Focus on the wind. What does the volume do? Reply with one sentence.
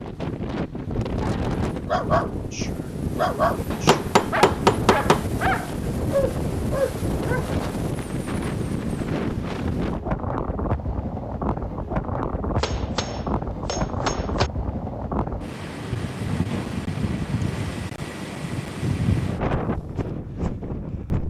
The volume of the wind stays about the same.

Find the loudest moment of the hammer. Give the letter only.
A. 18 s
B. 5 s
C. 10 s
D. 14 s
B.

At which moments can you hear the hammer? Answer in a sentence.
You can hear the hammer from 3.7 to 5.2 s and from 12.6 to 14.5 s.